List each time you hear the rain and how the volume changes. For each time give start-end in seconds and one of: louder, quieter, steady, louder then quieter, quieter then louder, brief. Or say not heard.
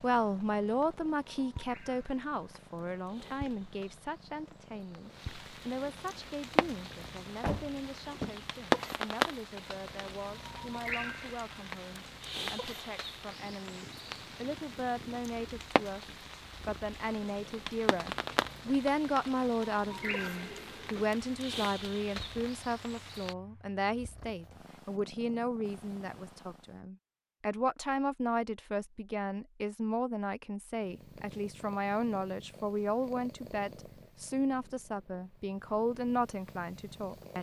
0.2-23.4 louder then quieter.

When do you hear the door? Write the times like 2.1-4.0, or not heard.
7.4-8.4, 19.8-21.1.